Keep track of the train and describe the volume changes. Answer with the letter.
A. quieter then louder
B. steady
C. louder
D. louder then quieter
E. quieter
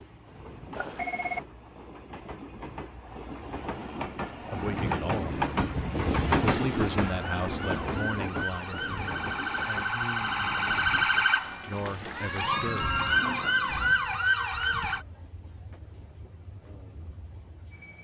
D.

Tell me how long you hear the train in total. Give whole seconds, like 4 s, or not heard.
18 s.